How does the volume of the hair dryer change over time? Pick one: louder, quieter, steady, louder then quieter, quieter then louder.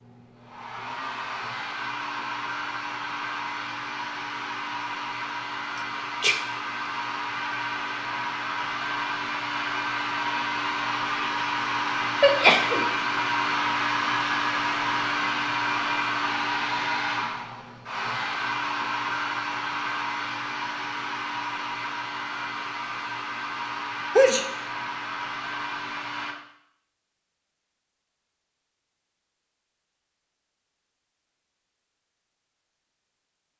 louder then quieter.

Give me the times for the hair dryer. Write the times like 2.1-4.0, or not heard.
0.0-26.4.